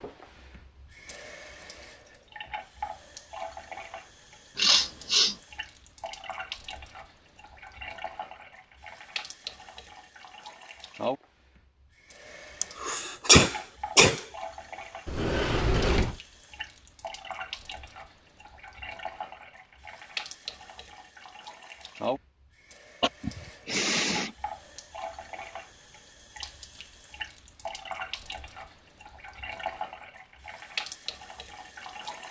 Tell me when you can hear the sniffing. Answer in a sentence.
The sniffing can be heard from 4.5 to 5.3 s, from 12.6 to 14.2 s and from 23.0 to 24.4 s.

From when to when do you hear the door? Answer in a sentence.
The door can be heard from 15.1 to 16.2 s.